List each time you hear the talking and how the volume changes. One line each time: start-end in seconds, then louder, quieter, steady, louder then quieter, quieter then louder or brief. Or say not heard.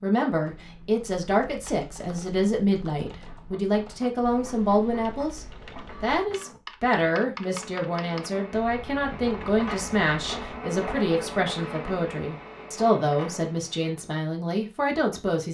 0.0-15.4 steady.